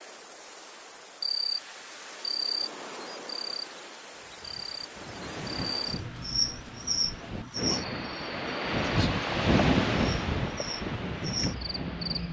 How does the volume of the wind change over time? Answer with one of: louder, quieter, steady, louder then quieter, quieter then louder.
louder then quieter.